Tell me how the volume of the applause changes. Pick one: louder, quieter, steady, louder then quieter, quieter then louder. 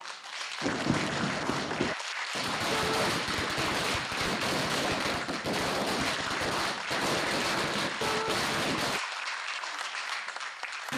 steady.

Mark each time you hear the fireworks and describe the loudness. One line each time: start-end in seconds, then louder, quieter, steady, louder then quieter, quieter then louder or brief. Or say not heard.
0.6-9.0 steady.